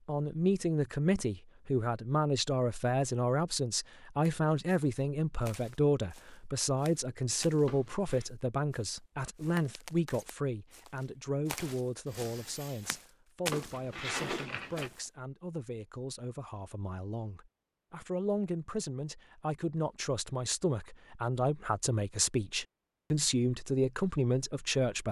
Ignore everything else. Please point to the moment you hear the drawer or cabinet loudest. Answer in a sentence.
The loudest moment of the drawer or cabinet is at 14 seconds.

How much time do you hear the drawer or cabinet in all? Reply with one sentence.
You can hear the drawer or cabinet for 2 seconds altogether.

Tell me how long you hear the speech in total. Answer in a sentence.
You can hear the speech for 25 seconds altogether.